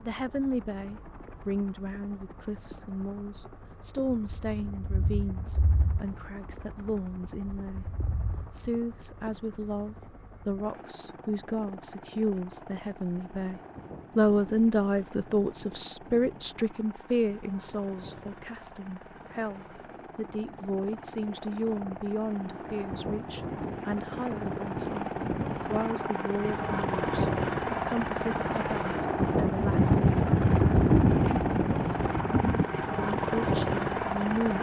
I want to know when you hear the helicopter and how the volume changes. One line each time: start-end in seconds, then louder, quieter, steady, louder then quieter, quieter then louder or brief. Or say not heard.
0.0-34.5 louder.